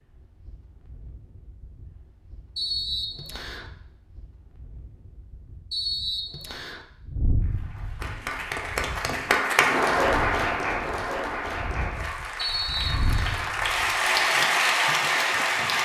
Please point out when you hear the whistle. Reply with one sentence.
You can hear the whistle from 2.5 to 3.7 s, from 5.7 to 6.8 s and from 12.3 to 13.5 s.